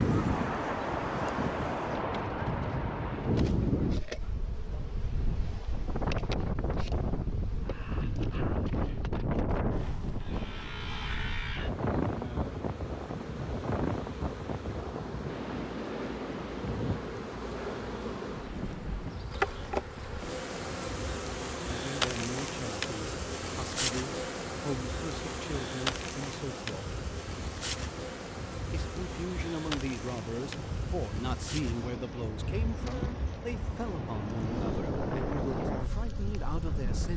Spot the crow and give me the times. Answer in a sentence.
The crow can't be heard in this clip.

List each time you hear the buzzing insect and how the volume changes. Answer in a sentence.
You can hear the buzzing insect from 0.0 to 37.1 s, getting louder then quieter.